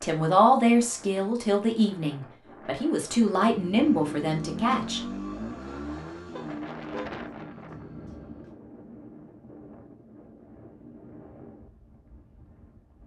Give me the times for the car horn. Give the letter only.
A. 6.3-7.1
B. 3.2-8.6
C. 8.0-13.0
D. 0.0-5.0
A.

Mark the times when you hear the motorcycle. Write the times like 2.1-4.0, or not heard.
3.2-8.6.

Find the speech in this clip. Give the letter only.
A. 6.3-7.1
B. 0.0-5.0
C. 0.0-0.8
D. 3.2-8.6
B.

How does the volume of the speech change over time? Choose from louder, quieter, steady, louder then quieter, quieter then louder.
quieter then louder.